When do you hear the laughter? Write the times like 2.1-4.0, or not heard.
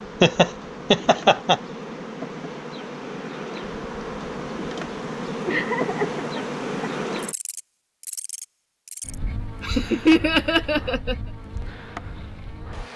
0.2-1.6, 5.0-6.9, 9.6-11.2.